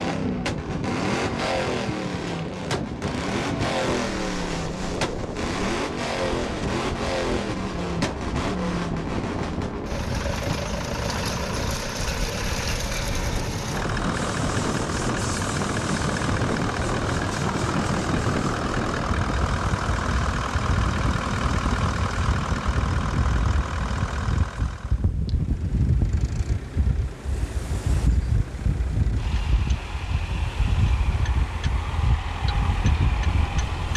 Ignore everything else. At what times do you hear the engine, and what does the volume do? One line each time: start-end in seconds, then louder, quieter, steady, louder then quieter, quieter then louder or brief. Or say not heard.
0.0-33.9 quieter.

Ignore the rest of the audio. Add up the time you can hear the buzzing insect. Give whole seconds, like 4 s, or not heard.
not heard.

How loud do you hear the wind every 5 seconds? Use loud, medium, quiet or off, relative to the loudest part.
medium, medium, loud, loud, loud, loud, loud.